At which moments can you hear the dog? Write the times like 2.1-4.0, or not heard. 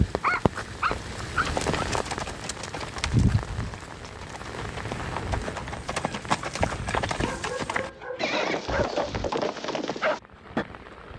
0.2-1.9, 6.4-9.2.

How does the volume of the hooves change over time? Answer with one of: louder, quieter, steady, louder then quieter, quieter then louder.
quieter then louder.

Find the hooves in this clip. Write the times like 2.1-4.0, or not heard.
1.4-10.7.